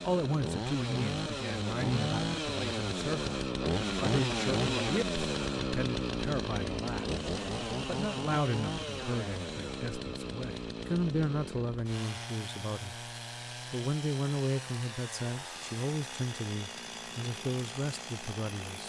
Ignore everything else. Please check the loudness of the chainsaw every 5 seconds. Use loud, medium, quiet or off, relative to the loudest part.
loud, loud, medium, medium.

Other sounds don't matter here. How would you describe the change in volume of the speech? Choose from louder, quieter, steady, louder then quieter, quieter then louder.
steady.